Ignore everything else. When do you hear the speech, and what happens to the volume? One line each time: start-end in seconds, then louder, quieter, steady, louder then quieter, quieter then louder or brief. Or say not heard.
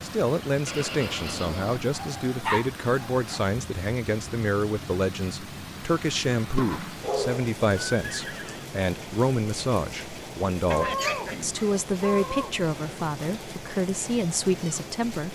0.0-15.3 steady.